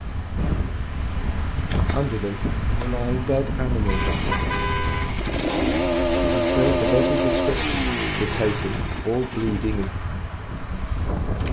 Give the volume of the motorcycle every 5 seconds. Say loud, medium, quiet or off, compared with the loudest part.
medium, loud, quiet.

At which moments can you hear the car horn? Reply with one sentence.
The car horn can be heard from 3.9 to 5.2 s.